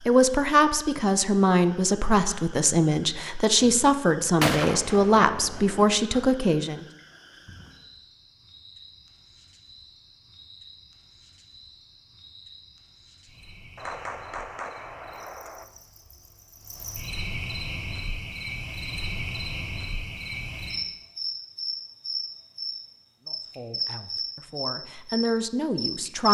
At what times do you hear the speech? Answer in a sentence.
The speech can be heard from 0.1 to 6.8 s and from 23.2 to 26.2 s.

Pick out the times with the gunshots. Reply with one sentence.
You can hear the gunshots from 4.4 to 6.0 s and from 13.8 to 15.7 s.